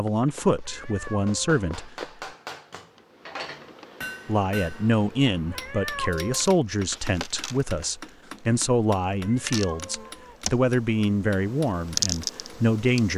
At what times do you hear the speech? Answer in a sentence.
You can hear the speech from 0.0 to 1.9 s and from 4.2 to 13.1 s.